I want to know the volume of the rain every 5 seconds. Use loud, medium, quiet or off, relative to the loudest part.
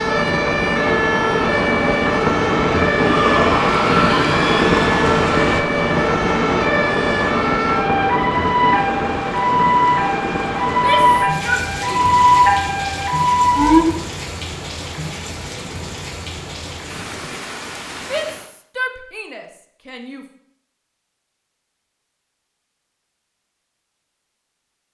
loud, loud, medium, quiet, off.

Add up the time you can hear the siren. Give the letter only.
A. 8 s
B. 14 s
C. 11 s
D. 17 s
B.